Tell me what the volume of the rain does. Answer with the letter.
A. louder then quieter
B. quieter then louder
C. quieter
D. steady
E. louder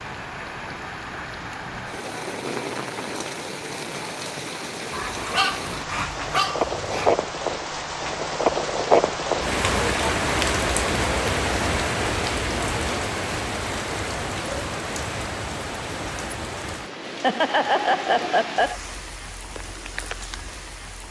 A.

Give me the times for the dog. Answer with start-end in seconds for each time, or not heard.
4.9-7.2.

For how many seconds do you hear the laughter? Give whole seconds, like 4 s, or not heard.
2 s.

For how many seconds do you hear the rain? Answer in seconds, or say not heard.
21 s.